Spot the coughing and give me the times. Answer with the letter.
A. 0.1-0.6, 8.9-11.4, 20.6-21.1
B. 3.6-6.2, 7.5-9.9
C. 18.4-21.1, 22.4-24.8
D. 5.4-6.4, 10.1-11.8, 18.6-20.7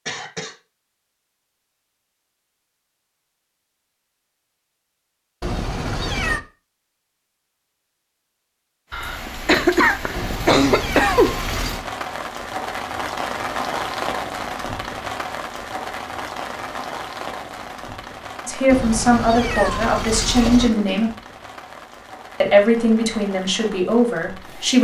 A.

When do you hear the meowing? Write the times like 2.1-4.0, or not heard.
5.4-6.4, 10.1-11.8, 18.6-20.7.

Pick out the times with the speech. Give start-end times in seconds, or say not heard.
18.4-21.1, 22.4-24.8.